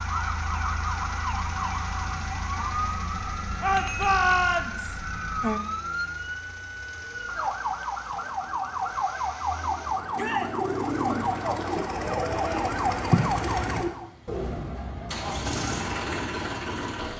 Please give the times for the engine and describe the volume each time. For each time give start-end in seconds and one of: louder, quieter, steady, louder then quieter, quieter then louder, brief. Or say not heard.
0.0-17.1 quieter then louder.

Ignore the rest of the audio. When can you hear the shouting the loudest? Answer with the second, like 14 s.
4 s.